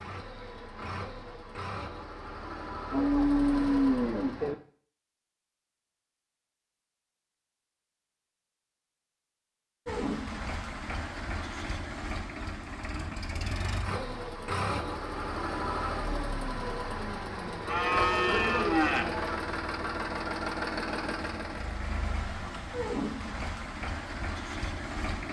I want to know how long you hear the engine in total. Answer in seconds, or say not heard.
20 s.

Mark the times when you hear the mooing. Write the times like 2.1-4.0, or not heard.
2.9-4.5, 17.6-19.4.